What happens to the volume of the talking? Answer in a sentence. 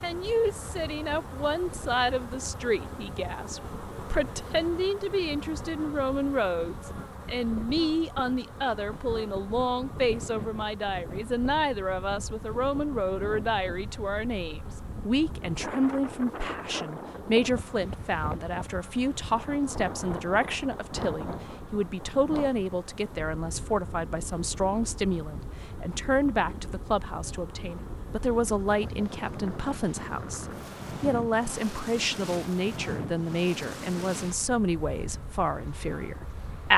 The loudness of the talking stays about the same.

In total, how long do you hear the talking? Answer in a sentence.
The talking can be heard for 37 seconds in total.